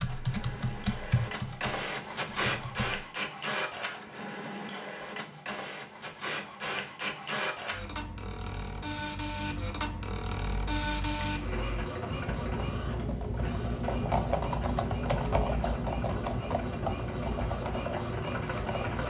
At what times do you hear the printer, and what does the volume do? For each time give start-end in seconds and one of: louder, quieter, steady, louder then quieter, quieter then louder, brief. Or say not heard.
0.0-19.0 steady.